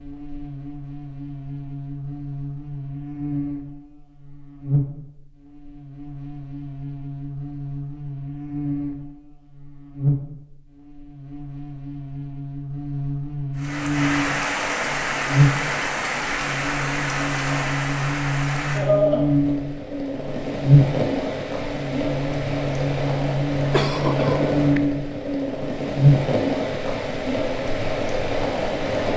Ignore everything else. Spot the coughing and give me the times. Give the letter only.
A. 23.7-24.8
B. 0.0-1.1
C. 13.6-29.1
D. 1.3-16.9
A.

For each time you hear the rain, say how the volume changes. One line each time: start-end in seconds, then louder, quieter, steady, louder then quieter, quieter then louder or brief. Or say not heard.
13.6-29.1 steady.